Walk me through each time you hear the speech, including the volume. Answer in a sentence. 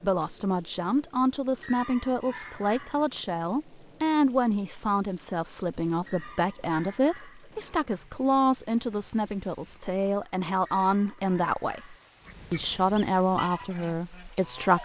The speech can be heard from 0.0 to 14.8 s, at a steady volume.